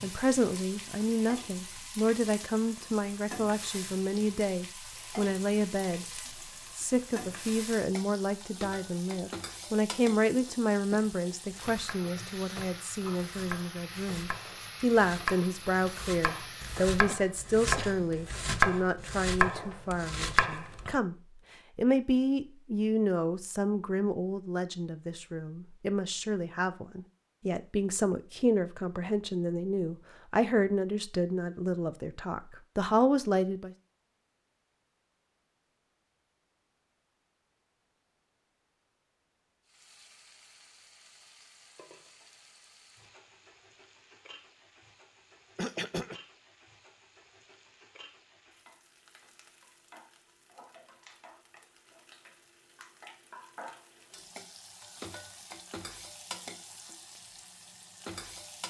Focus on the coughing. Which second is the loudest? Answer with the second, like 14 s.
46 s.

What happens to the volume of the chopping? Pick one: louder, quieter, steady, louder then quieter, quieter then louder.
louder.